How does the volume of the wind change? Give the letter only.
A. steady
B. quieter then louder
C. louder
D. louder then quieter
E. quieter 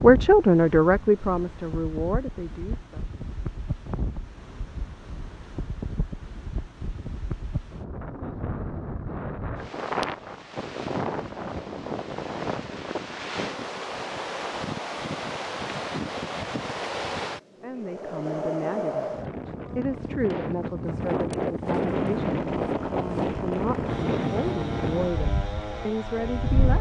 C.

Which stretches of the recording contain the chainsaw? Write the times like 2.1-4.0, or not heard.
21.9-26.7.